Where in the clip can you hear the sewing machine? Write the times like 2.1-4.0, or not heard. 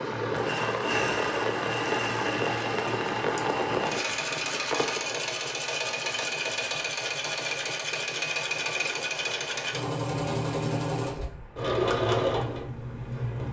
0.0-13.4.